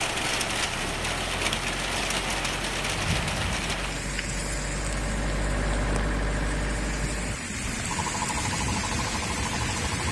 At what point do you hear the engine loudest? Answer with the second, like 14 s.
6 s.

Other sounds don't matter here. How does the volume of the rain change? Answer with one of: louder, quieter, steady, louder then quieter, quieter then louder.
quieter then louder.